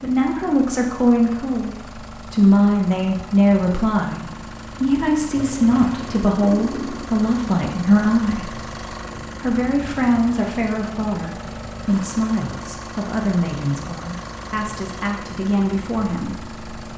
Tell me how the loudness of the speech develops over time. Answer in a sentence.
The loudness of the speech goes down.